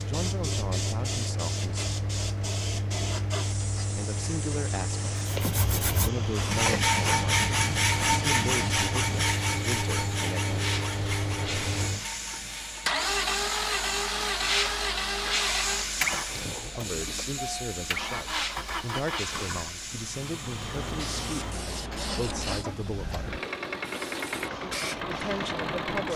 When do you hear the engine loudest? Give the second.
13 s.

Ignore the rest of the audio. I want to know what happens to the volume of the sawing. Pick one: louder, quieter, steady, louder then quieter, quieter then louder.
quieter.